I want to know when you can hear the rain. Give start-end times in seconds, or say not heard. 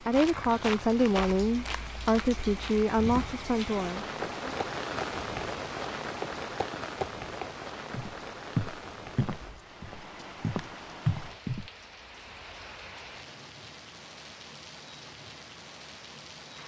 0.0-16.6.